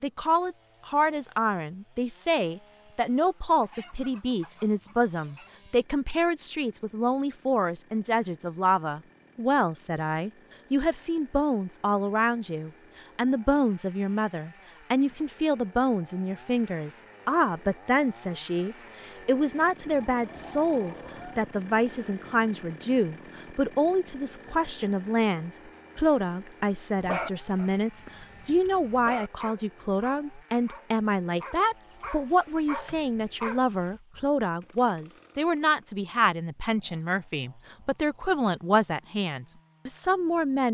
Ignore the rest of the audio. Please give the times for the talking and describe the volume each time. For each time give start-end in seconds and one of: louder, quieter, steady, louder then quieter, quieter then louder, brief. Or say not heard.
0.0-40.6 steady.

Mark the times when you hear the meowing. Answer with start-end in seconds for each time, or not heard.
not heard.